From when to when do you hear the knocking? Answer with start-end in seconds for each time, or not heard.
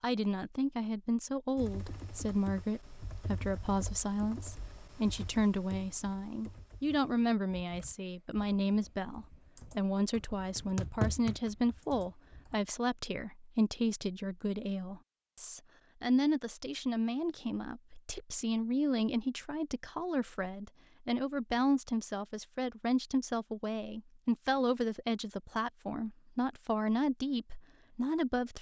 10.6-11.5.